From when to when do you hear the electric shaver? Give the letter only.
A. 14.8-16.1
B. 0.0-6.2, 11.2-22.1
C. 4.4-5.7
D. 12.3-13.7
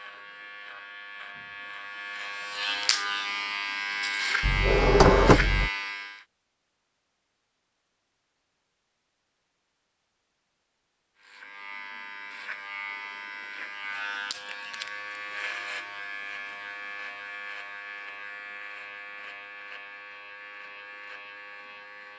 B.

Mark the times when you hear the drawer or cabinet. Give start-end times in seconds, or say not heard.
4.4-5.7.